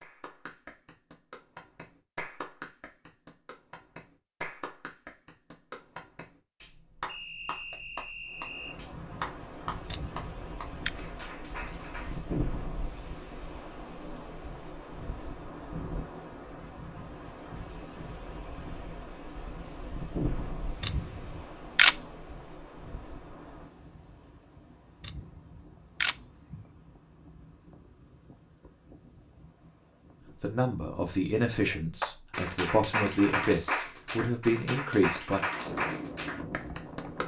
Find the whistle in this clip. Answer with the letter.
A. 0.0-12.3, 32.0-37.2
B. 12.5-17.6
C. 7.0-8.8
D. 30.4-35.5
C.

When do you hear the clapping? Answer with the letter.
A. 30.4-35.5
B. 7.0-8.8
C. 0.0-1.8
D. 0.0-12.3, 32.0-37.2
D.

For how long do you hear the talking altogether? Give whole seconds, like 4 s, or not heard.
5 s.